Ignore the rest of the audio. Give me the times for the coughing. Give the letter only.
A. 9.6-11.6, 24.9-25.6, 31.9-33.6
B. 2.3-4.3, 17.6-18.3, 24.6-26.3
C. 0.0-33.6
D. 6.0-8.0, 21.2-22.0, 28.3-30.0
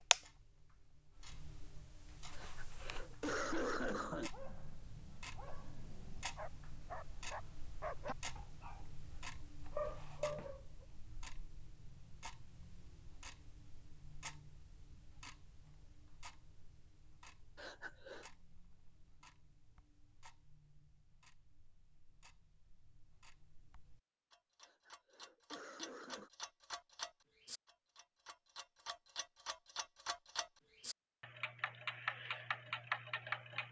B.